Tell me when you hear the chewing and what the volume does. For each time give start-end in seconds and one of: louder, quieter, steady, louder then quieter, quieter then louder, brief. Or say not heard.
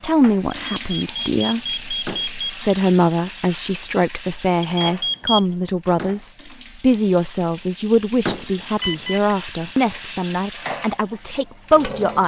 not heard.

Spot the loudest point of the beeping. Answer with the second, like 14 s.
5 s.